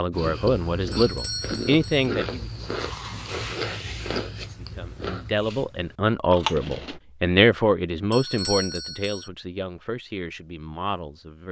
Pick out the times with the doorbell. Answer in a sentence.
The doorbell can be heard from 0.9 to 2.1 s and from 8.1 to 9.3 s.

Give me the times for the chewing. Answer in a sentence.
You can hear the chewing from 0.1 to 7.0 s.